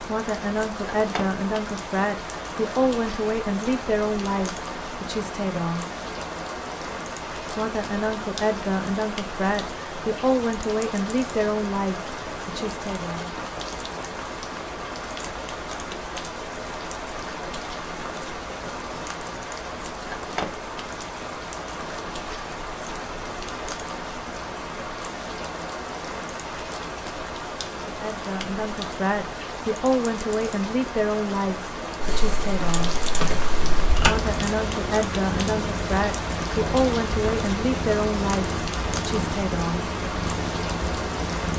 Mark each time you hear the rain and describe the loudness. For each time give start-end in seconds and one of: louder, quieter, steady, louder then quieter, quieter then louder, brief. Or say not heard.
0.0-41.5 steady.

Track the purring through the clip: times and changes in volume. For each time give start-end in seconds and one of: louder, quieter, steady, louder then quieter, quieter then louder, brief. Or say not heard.
33.6-41.5 steady.